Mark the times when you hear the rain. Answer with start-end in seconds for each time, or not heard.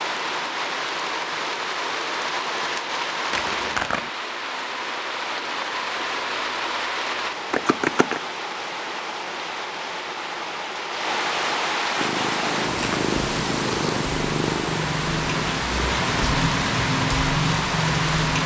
0.0-18.4.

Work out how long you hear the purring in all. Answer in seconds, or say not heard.
4 s.